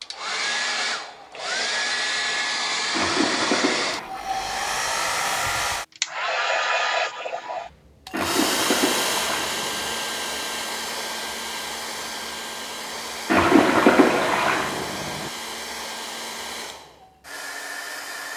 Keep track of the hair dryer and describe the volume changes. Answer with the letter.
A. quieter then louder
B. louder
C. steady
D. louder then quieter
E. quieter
E.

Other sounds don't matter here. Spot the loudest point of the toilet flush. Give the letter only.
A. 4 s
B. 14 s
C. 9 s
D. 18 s
B.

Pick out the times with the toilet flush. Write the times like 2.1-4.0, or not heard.
2.9-4.2, 8.1-9.9, 13.3-15.3.